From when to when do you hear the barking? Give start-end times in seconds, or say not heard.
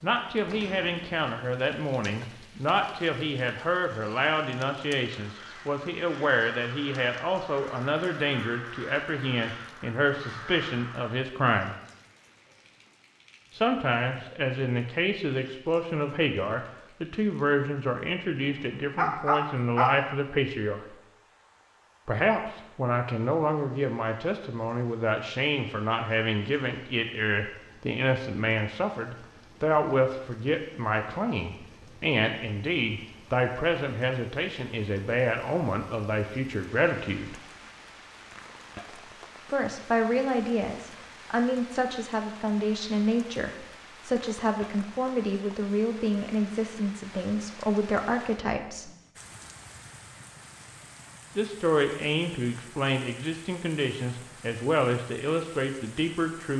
18.4-19.9.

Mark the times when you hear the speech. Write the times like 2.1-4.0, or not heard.
0.0-11.8, 13.6-20.9, 22.1-37.4, 39.5-48.9, 51.4-56.5.